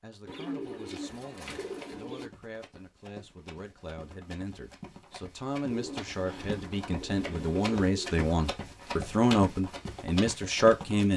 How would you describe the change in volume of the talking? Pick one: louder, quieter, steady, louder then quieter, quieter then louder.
louder.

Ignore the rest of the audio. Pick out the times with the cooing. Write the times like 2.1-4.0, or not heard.
0.2-2.3, 5.7-8.1.